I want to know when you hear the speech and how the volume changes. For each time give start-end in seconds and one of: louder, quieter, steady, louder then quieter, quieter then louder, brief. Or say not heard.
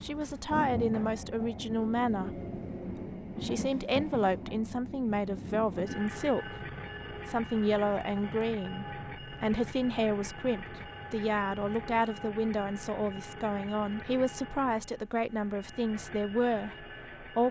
0.0-17.4 steady.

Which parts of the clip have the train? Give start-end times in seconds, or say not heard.
0.0-17.4.